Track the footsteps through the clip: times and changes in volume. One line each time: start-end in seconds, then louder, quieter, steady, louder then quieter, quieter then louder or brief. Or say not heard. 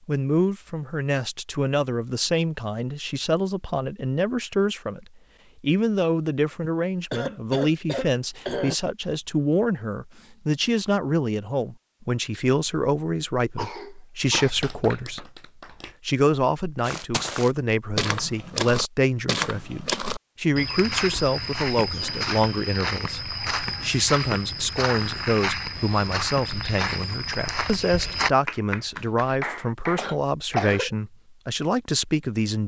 16.8-28.3 steady.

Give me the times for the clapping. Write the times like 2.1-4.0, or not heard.
14.2-15.9, 28.4-30.6.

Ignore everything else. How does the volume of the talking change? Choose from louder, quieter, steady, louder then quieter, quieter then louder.
steady.